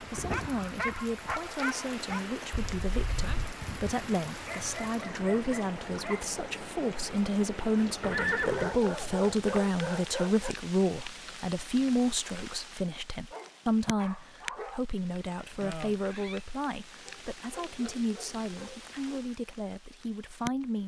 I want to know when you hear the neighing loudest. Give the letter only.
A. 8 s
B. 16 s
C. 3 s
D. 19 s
A.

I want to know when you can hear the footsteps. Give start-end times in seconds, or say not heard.
not heard.